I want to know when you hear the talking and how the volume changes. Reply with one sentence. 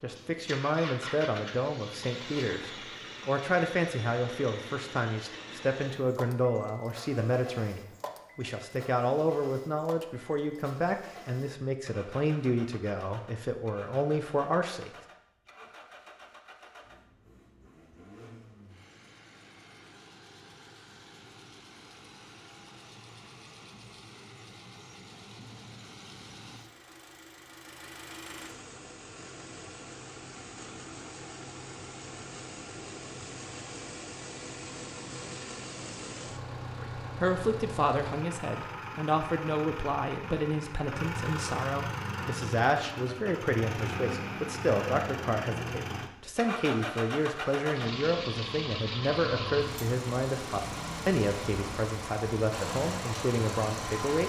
You can hear the talking from 0.0 to 14.9 s, at a steady volume; and from 36.8 to 54.2 s, at a steady volume.